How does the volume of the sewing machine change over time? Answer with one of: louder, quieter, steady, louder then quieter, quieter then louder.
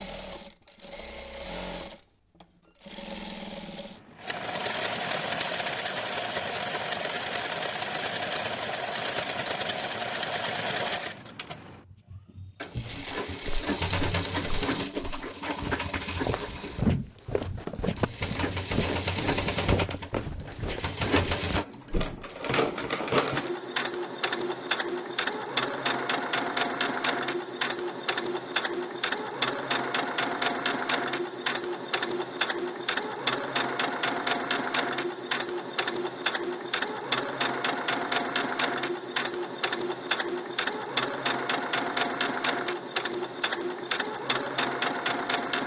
steady.